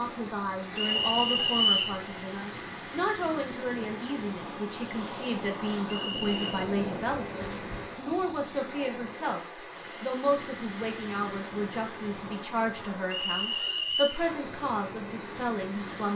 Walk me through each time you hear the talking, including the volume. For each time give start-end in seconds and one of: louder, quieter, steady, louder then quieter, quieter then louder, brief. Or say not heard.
0.0-16.1 steady.